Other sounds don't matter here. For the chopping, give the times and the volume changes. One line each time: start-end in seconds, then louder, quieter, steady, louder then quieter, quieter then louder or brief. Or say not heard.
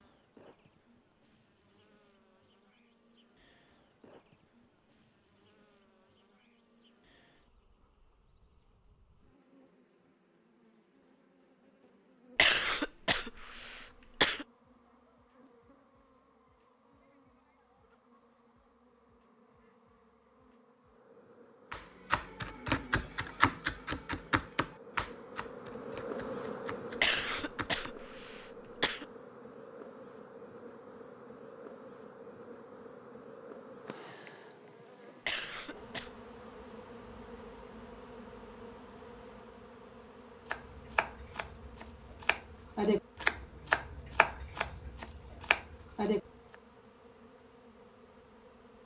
21.7-27.9 quieter
40.5-46.2 louder then quieter.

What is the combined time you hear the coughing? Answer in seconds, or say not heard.
5 s.